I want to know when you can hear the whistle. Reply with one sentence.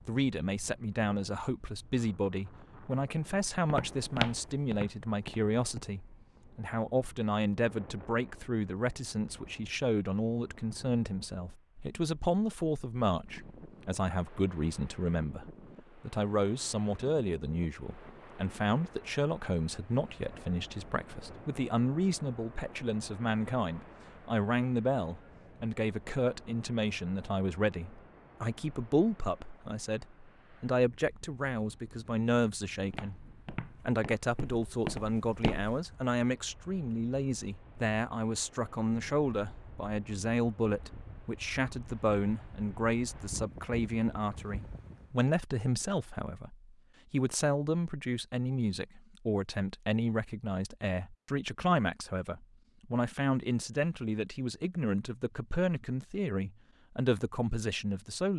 You can't hear the whistle here.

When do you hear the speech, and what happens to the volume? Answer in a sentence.
The speech can be heard from 0.1 to 58.3 s, at a steady volume.